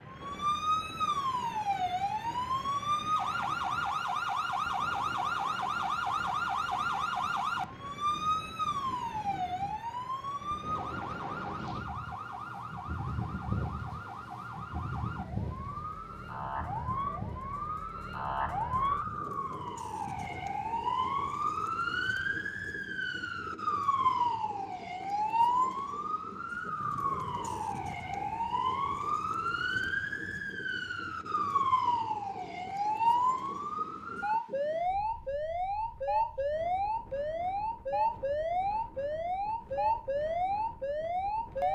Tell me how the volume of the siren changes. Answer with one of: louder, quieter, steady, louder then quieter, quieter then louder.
quieter then louder.